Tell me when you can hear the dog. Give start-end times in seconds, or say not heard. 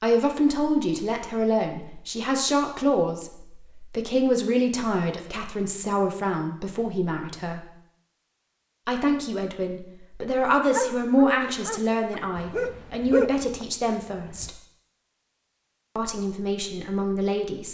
10.7-14.5.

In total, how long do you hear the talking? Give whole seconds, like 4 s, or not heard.
15 s.